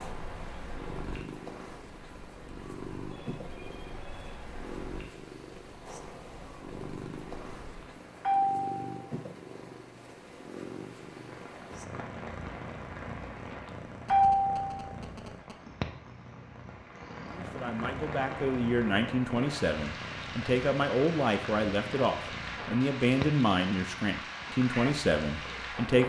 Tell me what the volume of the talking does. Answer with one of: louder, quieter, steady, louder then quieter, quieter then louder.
steady.